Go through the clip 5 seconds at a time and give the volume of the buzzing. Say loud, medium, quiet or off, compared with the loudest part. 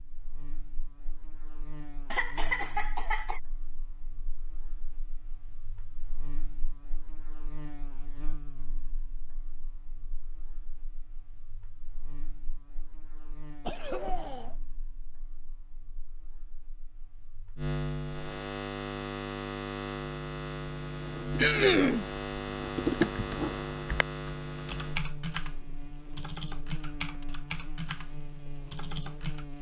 quiet, quiet, quiet, loud, loud, medium.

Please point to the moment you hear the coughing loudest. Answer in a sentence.
The loudest moment of the coughing is at 22 seconds.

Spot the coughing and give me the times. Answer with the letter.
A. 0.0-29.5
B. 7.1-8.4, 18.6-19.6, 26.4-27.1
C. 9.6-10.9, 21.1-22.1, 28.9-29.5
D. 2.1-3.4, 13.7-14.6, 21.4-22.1
D.